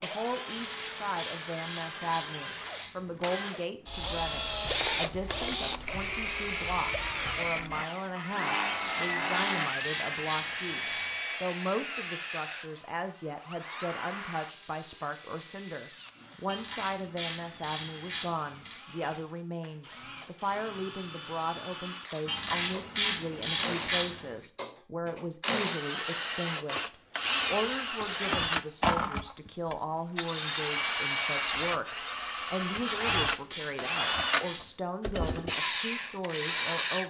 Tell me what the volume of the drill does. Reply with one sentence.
The loudness of the drill goes down, then up.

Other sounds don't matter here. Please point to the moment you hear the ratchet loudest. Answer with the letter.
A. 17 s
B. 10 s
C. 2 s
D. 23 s
D.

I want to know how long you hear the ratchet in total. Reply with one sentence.
The ratchet can be heard for 12 seconds in total.